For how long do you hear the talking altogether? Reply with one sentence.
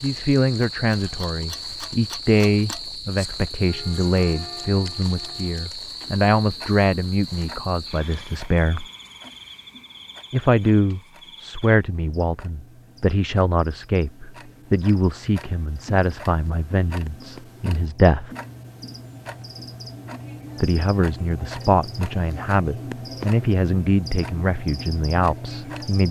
You can hear the talking for 22 seconds altogether.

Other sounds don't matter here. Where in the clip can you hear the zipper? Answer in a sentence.
The zipper can't be heard in this clip.